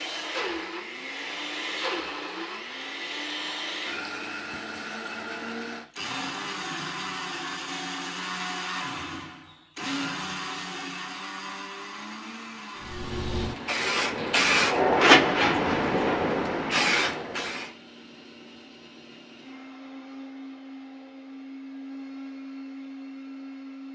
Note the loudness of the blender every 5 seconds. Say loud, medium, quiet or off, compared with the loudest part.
loud, loud, loud, quiet, medium.